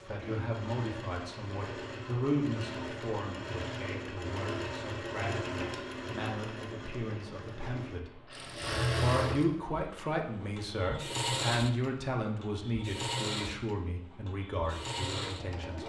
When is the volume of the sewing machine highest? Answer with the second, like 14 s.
9 s.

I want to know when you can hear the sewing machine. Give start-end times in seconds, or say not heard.
0.0-15.8.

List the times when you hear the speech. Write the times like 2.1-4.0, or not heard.
0.0-15.8.